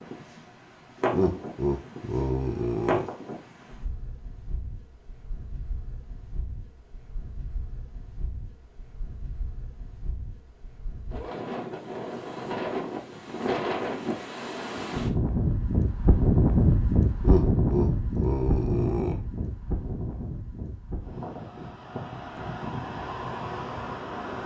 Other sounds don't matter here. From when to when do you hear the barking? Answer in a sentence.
You can't hear the barking here.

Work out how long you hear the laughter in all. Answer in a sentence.
You can hear the laughter for 4 seconds altogether.